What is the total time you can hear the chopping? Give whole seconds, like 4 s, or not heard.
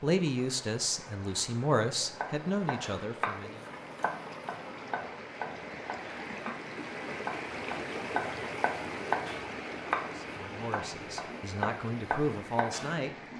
11 s.